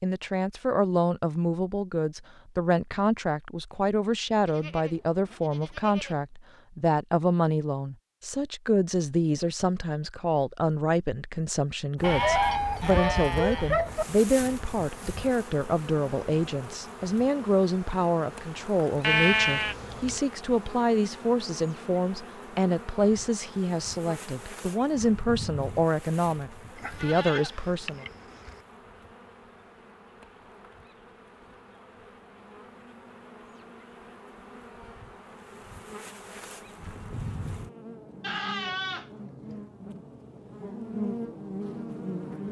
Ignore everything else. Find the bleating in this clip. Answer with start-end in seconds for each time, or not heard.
4.5-6.2, 12.0-14.1, 19.0-20.2, 26.8-28.6, 38.2-39.5.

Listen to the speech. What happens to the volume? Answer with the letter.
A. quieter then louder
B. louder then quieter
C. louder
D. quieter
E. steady
E.